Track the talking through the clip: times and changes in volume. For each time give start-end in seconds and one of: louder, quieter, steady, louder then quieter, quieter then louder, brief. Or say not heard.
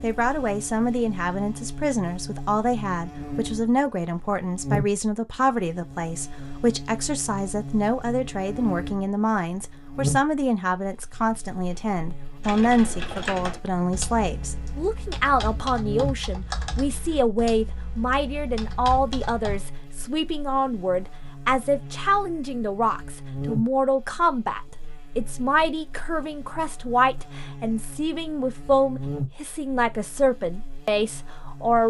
0.0-31.8 steady.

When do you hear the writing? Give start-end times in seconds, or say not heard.
not heard.